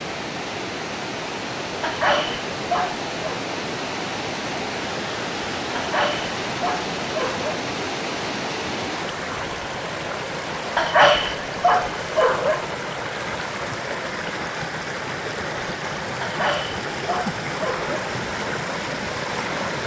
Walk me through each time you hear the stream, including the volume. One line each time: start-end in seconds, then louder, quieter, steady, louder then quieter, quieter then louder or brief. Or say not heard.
0.0-19.8 steady.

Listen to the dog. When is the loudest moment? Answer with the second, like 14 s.
11 s.